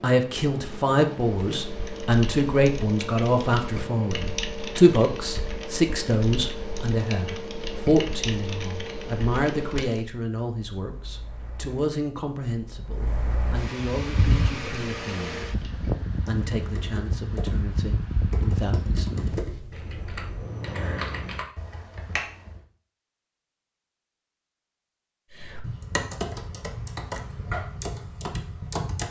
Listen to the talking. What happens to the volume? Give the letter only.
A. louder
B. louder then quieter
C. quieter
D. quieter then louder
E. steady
C.